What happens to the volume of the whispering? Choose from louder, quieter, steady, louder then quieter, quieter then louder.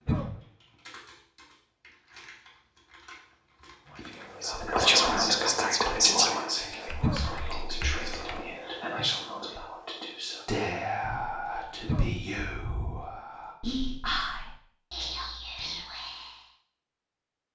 quieter.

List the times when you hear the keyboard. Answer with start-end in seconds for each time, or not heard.
0.0-4.5, 6.6-8.6.